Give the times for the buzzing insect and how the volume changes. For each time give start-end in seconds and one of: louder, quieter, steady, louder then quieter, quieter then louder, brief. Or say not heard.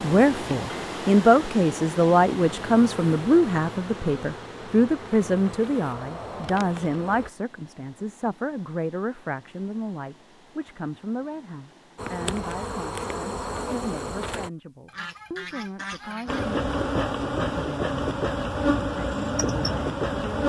0.0-7.3 steady
11.9-14.5 brief
16.2-20.4 steady.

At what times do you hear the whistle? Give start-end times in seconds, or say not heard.
not heard.